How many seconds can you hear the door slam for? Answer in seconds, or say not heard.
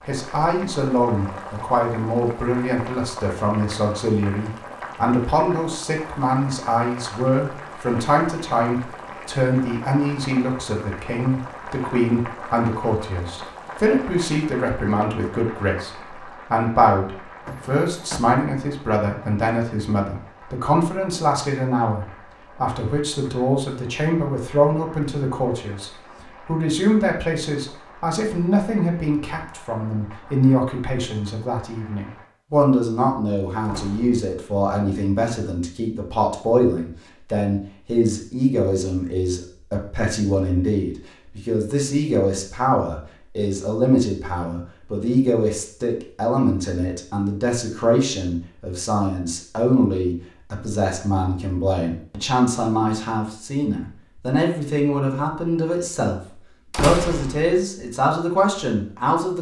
2 s.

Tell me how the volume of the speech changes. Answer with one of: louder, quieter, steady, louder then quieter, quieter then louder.
steady.